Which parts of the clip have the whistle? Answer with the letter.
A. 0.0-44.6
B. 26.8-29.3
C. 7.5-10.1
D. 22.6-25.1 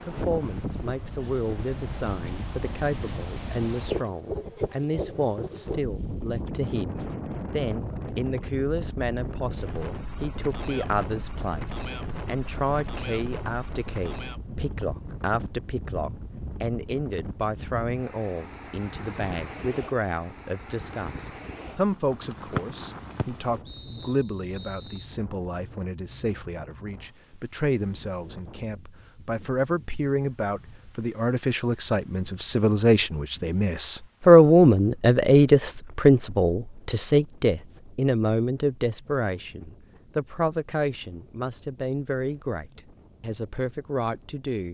D.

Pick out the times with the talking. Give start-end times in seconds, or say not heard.
0.0-44.6.